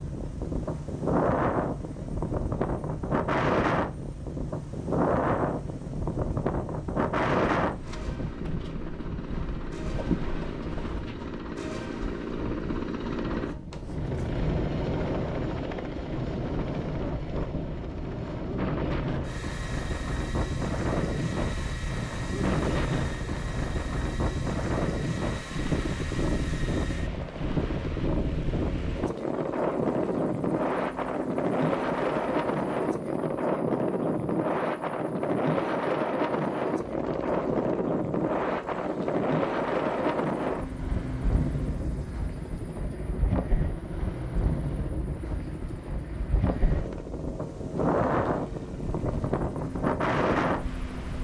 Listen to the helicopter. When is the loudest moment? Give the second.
15 s.